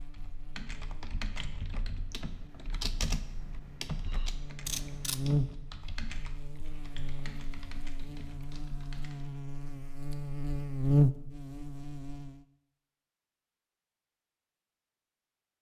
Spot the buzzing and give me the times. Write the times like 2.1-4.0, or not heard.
0.0-12.4.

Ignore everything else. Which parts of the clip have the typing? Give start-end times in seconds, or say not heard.
0.0-9.3.